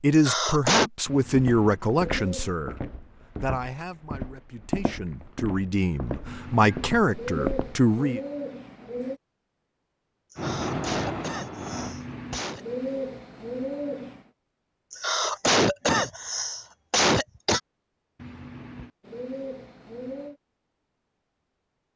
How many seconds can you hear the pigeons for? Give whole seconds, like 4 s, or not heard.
9 s.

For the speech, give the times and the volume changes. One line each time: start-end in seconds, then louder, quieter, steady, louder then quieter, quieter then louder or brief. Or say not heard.
0.0-8.2 quieter then louder.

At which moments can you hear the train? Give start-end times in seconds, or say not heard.
10.3-11.9.